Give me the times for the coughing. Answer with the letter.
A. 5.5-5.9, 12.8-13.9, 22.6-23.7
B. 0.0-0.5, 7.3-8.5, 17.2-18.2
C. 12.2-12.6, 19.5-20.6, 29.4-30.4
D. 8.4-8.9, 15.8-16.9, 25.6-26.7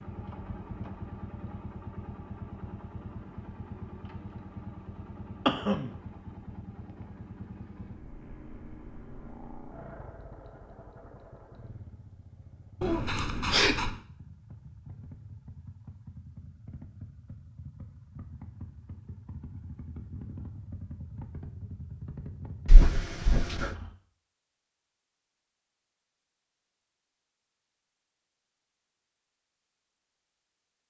A.